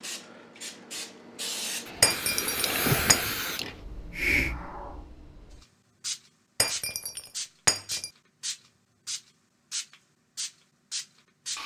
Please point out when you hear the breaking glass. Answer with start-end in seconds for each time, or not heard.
2.0-3.2, 6.5-8.1.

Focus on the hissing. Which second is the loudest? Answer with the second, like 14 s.
3 s.